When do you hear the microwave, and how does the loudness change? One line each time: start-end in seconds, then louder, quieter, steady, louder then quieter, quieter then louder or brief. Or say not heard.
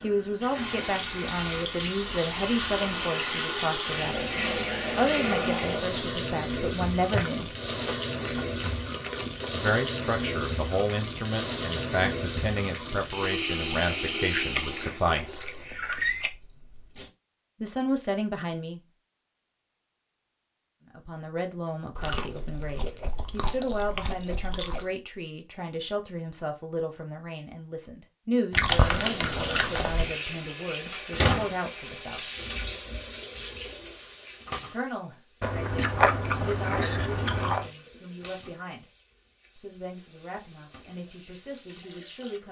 not heard.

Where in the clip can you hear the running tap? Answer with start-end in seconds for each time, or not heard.
0.0-17.1, 28.6-42.4.